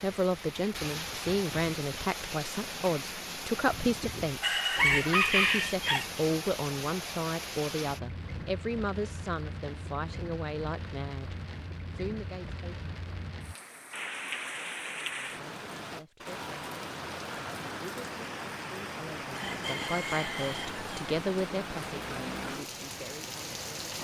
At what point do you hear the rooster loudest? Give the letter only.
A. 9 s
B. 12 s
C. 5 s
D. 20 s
C.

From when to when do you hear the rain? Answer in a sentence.
The rain can be heard from 0.0 to 23.9 s.